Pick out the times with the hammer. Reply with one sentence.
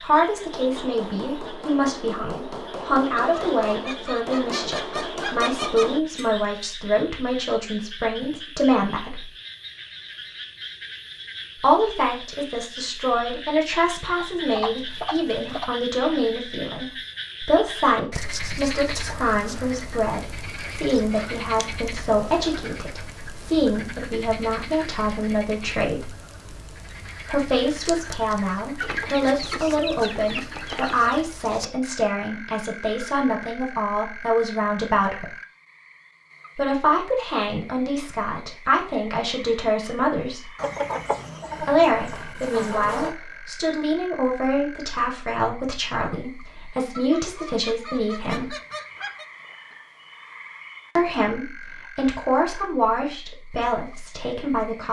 The hammer can be heard from 0.3 to 6.5 s.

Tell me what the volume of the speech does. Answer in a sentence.
The volume of the speech stays about the same.